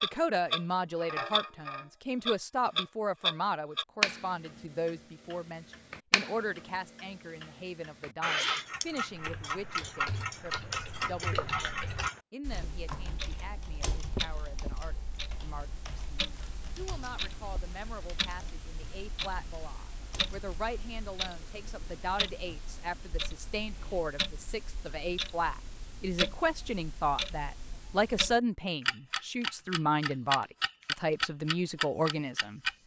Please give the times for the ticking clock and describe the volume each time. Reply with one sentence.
You can hear the ticking clock from 0.0 to 32.8 s, getting quieter then louder.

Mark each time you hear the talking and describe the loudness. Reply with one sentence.
The talking can be heard from 0.0 to 32.6 s, getting quieter then louder.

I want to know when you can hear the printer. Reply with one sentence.
You can't hear the printer here.